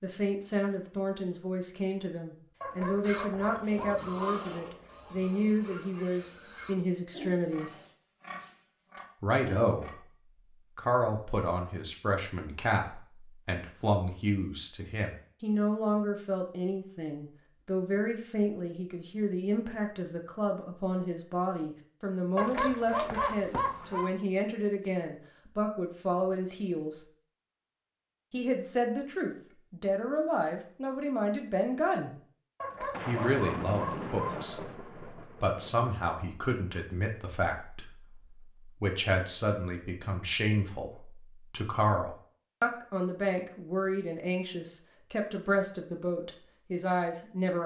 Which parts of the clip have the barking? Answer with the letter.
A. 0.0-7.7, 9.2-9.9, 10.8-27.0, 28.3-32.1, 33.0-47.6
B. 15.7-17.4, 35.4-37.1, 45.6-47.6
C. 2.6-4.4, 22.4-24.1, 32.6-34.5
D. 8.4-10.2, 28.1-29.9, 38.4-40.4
C.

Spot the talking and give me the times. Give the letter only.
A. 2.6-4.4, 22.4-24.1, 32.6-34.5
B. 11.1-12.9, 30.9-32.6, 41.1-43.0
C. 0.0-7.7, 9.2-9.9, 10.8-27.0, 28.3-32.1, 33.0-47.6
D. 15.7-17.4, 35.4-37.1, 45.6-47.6
C.